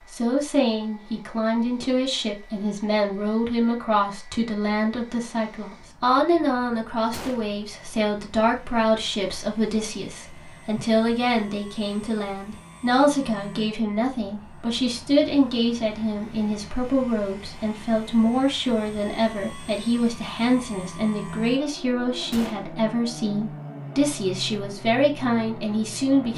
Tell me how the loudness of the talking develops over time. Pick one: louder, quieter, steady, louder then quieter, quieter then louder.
steady.